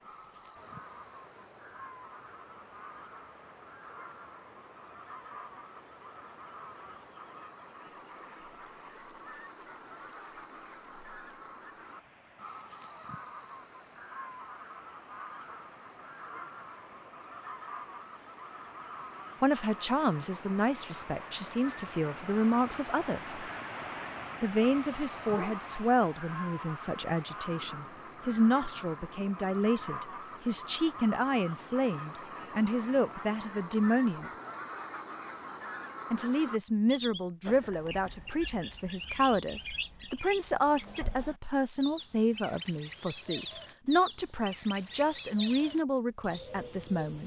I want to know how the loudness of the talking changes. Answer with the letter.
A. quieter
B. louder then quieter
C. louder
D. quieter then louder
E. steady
E.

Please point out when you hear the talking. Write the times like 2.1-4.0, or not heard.
19.4-23.4, 24.4-34.3, 36.1-47.2.